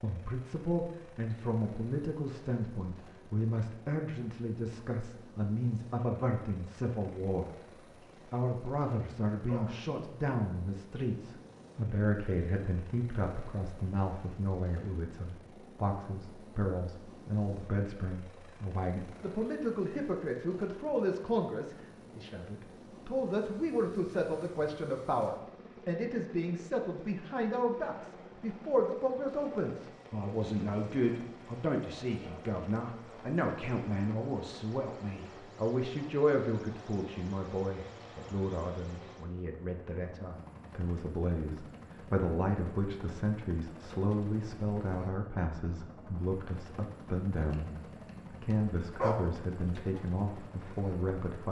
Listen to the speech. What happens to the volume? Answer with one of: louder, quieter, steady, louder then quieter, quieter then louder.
steady.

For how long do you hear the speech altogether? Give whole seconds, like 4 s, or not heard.
51 s.